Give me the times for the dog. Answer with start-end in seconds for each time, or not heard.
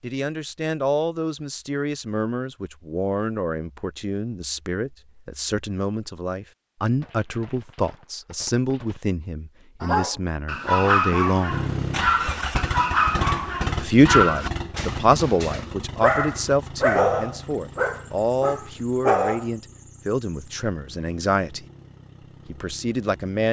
9.8-19.4.